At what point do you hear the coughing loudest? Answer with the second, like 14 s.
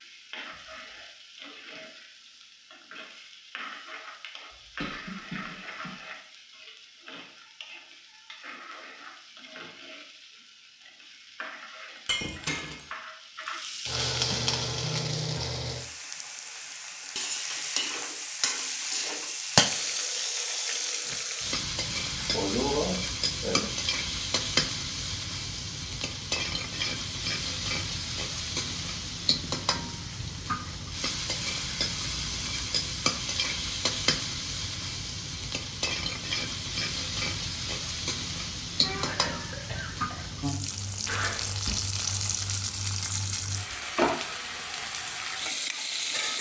23 s.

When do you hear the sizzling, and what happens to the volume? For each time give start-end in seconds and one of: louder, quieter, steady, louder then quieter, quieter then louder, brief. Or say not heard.
0.0-46.3 louder.